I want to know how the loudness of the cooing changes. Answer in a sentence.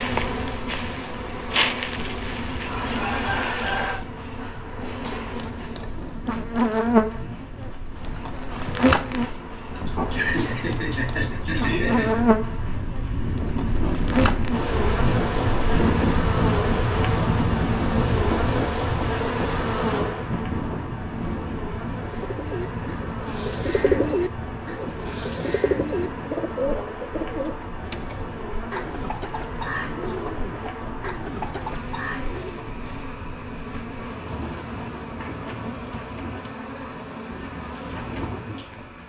The loudness of the cooing goes down.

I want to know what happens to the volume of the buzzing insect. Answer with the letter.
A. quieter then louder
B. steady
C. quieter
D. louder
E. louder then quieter
C.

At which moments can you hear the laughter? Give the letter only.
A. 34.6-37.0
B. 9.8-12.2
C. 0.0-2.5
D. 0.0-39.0
B.